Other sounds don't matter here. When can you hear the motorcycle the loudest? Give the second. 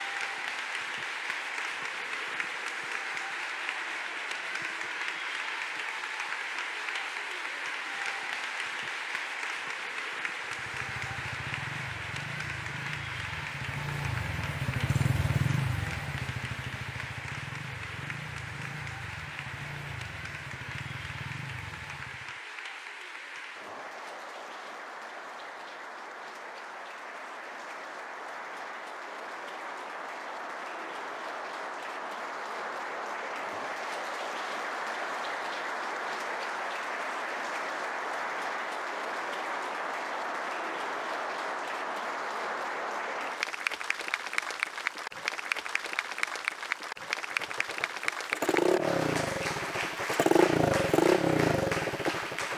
51 s.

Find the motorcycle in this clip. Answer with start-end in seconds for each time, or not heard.
10.4-22.4, 47.3-52.5.